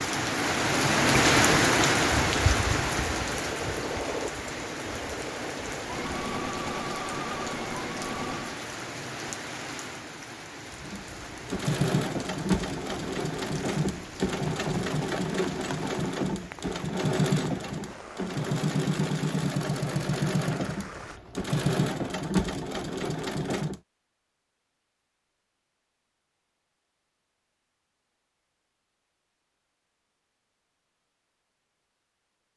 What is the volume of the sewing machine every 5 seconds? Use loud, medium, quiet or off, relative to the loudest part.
medium, medium, loud, loud, loud, off, off.